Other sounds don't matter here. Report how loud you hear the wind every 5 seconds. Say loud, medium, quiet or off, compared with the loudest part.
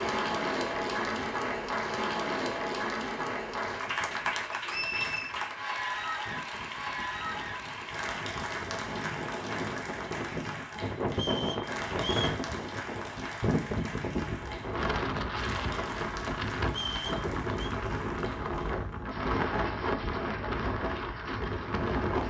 quiet, medium, loud, loud, loud.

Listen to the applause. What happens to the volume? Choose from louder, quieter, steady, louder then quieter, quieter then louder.
quieter.